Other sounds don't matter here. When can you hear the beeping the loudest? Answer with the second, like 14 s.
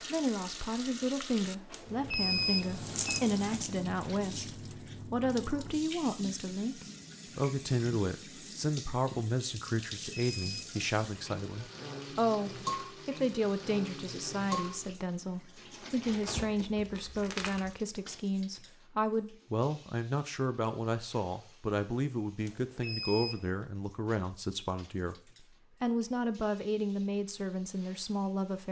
2 s.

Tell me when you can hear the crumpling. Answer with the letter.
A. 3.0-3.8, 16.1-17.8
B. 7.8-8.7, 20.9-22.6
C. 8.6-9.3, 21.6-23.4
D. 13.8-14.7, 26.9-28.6
A.